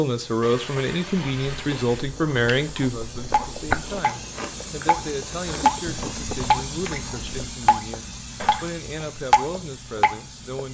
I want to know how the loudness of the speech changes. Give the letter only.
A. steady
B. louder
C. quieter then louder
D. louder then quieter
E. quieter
E.